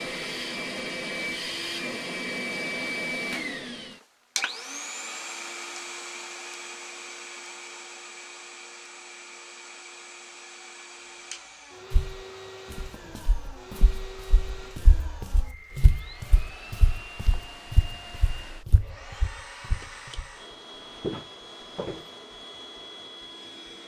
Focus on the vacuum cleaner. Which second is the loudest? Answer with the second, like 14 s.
3 s.